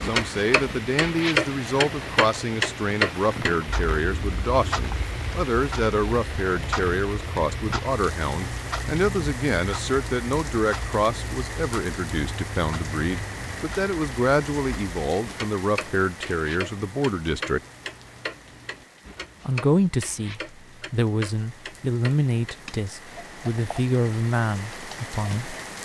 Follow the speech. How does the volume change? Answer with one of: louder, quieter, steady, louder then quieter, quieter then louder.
steady.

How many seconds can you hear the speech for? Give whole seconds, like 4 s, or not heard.
24 s.